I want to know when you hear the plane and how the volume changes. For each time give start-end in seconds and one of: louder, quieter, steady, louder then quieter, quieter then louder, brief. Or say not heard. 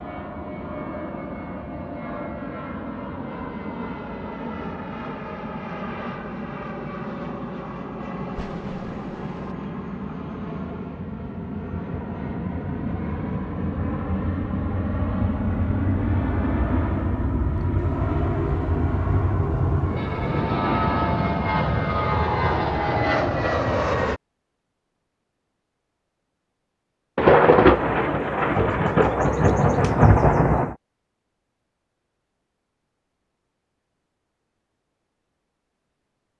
0.0-24.2 louder.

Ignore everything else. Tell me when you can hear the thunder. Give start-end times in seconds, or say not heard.
8.3-9.6, 17.8-20.5, 27.1-30.8.